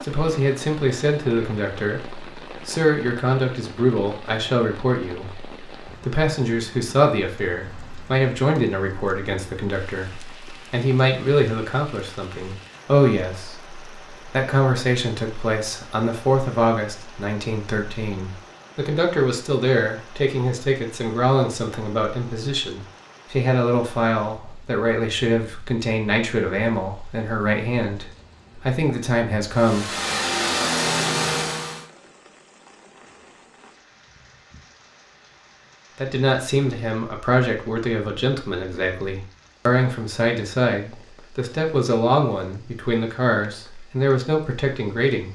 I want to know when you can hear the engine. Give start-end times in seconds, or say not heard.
29.5-31.9.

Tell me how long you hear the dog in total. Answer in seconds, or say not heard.
not heard.